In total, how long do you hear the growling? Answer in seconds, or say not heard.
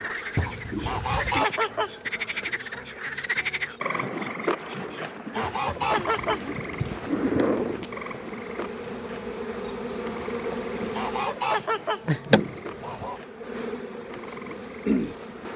5 s.